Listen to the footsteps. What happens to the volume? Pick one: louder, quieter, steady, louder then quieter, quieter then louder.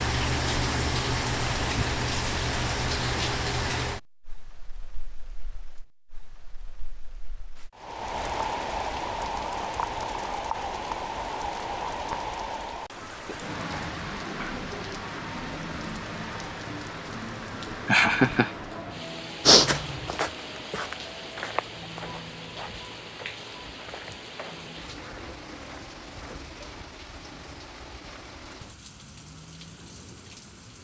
quieter.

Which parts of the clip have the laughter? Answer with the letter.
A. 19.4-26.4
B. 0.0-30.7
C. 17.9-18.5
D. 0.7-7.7
C.